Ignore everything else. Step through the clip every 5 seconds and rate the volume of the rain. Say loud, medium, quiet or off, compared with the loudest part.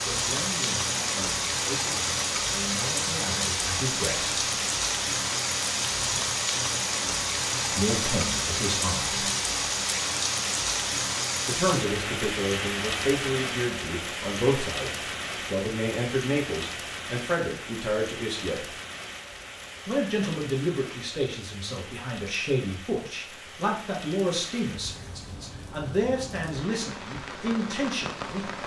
loud, loud, loud, medium, quiet, medium.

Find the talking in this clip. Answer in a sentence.
You can hear the talking from 0.0 to 4.3 s, from 7.7 to 9.2 s, from 11.4 to 18.7 s and from 19.9 to 28.4 s.